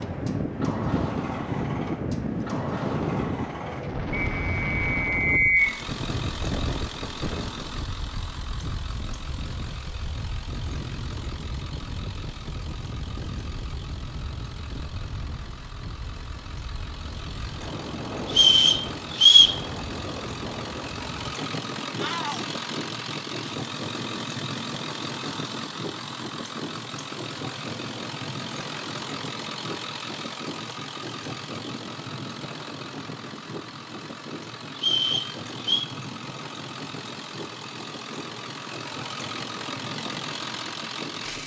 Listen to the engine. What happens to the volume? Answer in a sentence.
The volume of the engine goes down, then up.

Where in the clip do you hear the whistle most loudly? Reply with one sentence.
The loudest moment of the whistle is at 19 seconds.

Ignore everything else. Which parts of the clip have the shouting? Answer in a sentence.
You can hear the shouting from 21.9 to 22.6 s.